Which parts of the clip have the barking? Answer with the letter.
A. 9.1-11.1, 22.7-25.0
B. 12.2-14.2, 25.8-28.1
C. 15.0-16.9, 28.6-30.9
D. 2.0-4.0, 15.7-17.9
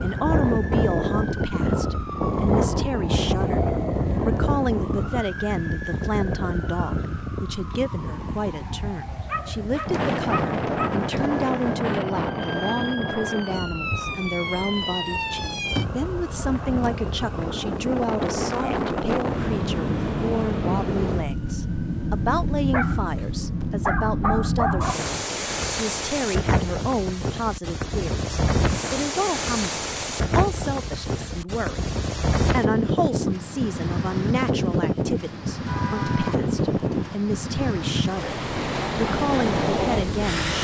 A.